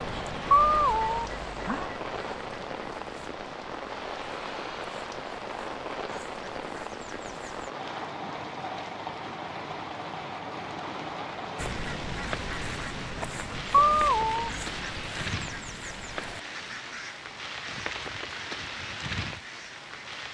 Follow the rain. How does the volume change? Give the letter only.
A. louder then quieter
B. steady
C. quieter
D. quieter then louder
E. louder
B.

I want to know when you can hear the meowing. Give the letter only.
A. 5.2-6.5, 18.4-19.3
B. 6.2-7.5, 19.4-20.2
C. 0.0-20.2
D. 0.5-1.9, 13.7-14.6
D.